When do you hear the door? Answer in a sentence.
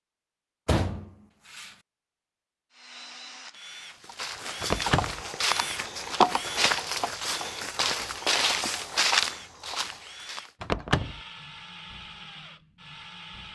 You can hear the door from 0.7 to 1.7 s, from 4.6 to 5.2 s and from 10.6 to 11.2 s.